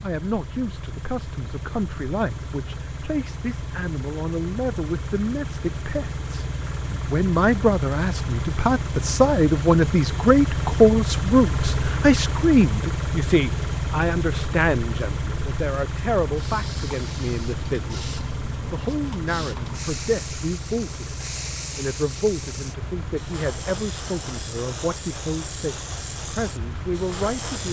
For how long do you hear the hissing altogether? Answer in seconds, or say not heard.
11 s.